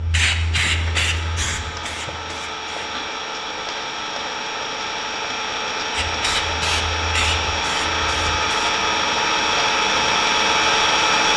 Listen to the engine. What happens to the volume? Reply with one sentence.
The volume of the engine goes up.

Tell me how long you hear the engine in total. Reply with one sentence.
The engine can be heard for 11 seconds in total.